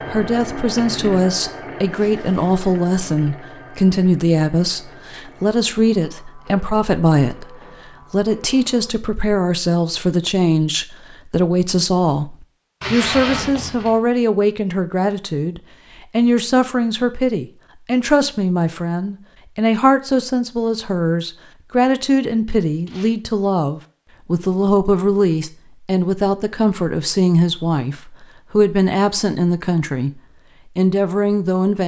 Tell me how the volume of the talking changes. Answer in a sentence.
The volume of the talking stays about the same.